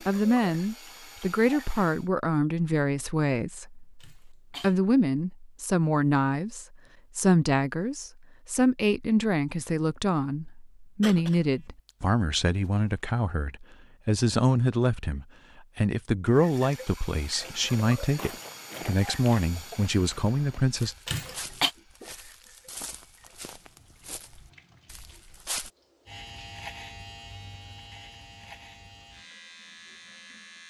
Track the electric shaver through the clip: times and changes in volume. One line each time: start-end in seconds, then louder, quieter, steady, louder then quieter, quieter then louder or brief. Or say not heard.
26.1-30.6 quieter.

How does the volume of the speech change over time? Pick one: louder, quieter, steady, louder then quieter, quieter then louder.
steady.